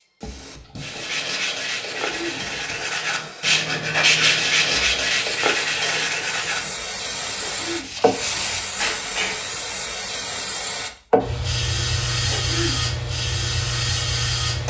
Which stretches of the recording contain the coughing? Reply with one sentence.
You can hear the coughing from 2.0 to 2.5 s, from 7.3 to 8.0 s and from 12.2 to 12.8 s.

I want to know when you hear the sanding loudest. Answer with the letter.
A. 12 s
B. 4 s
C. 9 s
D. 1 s
B.